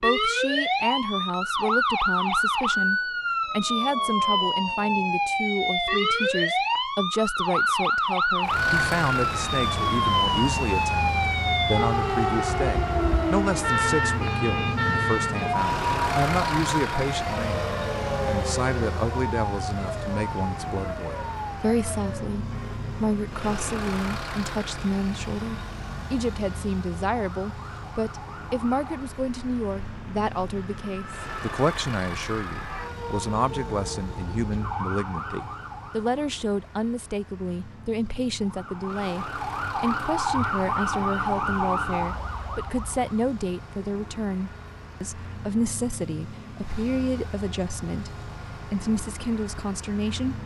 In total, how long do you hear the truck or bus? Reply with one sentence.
The truck or bus can be heard for 42 seconds in total.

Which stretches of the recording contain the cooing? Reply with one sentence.
The cooing can't be heard in this clip.